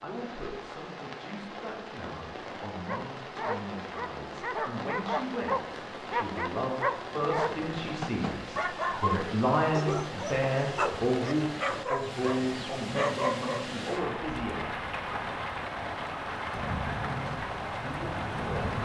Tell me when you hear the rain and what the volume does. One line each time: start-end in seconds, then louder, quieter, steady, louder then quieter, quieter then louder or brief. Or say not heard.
0.0-18.7 louder.